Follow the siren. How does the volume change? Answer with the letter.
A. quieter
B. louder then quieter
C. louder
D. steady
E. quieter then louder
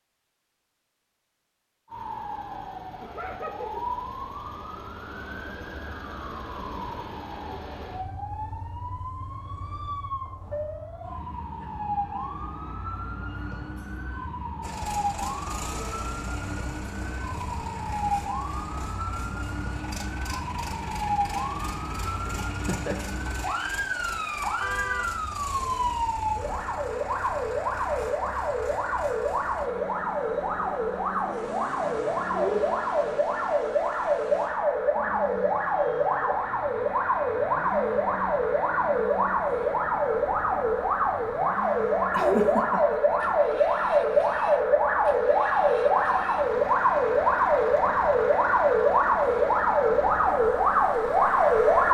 C.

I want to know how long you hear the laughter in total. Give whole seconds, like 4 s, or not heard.
2 s.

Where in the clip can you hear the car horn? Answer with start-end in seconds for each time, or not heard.
24.6-26.6.